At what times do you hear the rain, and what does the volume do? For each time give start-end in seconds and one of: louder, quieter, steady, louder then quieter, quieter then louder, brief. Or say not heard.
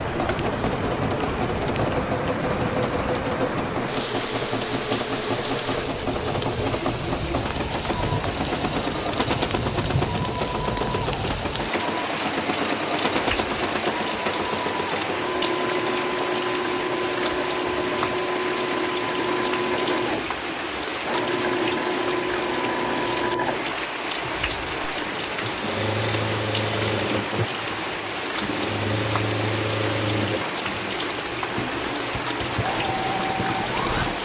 0.0-34.1 steady.